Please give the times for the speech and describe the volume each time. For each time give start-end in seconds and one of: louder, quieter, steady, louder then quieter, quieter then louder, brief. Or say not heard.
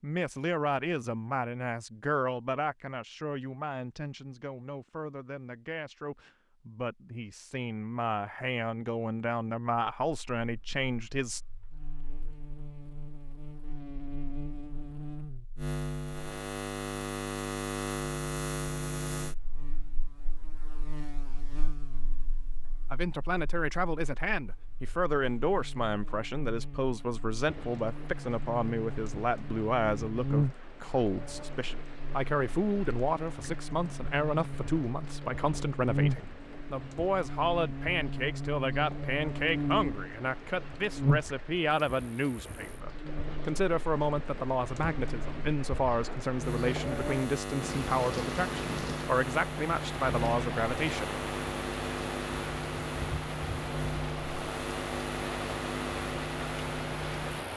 0.0-11.4 quieter then louder
22.9-51.2 steady.